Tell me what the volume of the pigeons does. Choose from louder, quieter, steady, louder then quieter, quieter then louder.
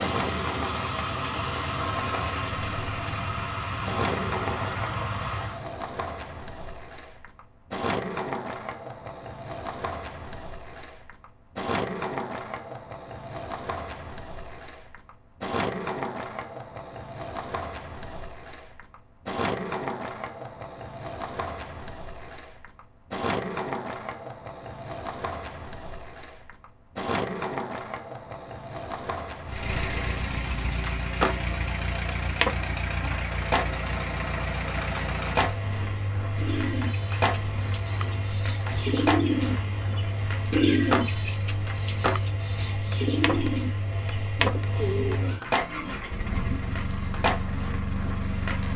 louder then quieter.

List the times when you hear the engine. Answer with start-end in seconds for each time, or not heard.
0.0-5.7, 29.4-48.7.